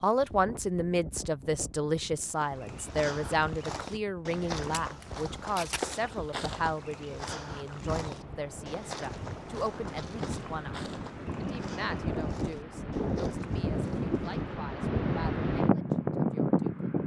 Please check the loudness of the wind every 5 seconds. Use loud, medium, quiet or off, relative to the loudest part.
quiet, quiet, medium, loud.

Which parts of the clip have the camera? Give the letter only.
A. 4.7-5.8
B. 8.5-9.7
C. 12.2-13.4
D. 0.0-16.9
A.